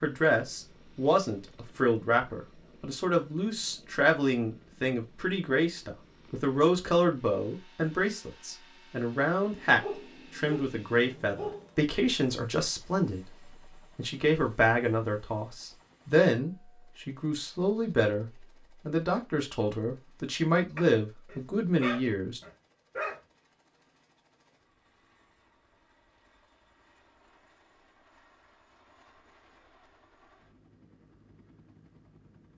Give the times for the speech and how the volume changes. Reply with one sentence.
You can hear the speech from 0.0 to 22.4 s, at a steady volume.